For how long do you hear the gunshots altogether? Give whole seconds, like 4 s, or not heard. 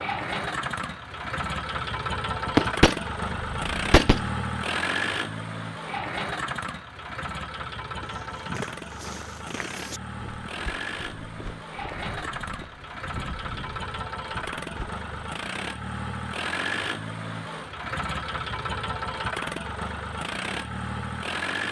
2 s.